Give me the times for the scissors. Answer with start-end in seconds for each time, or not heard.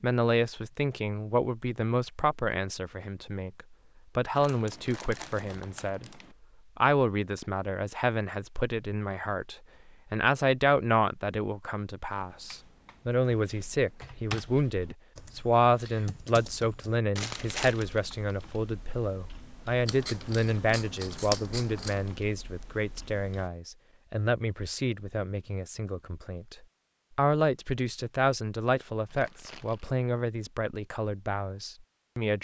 19.9-22.1.